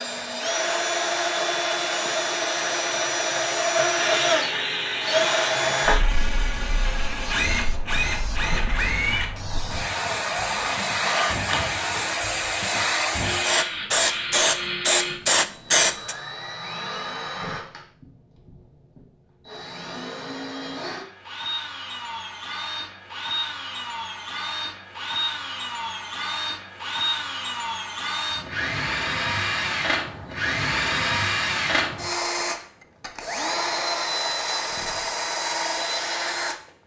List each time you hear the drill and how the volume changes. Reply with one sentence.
The drill can be heard from 0.0 to 36.6 s, getting quieter then louder.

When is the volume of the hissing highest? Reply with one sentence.
The loudest moment of the hissing is at 15 seconds.